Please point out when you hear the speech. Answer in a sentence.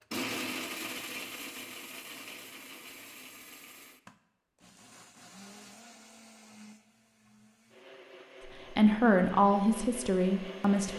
You can hear the speech from 8.8 to 10.9 s.